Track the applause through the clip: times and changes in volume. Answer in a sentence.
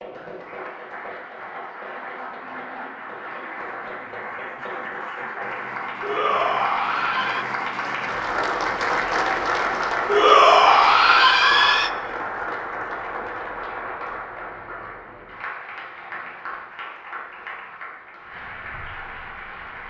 The applause can be heard from 0.0 to 19.8 s, getting louder then quieter.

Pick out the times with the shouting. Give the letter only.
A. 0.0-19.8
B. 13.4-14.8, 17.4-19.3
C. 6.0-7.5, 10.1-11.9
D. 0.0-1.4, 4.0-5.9
C.